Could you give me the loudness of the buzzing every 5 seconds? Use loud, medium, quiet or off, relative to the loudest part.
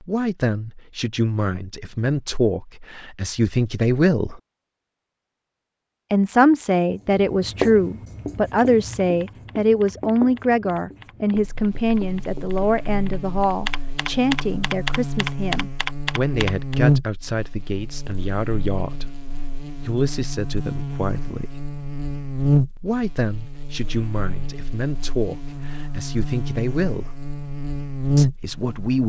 off, off, medium, loud, loud, loud.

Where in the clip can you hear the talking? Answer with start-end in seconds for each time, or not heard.
0.0-4.4, 6.1-21.6, 22.8-27.1, 28.1-29.0.